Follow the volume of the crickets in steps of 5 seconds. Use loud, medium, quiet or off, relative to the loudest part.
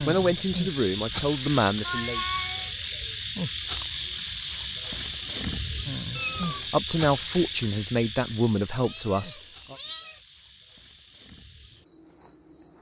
loud, loud, quiet.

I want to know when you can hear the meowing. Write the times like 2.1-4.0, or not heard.
1.9-2.8, 6.2-6.7, 8.8-10.2.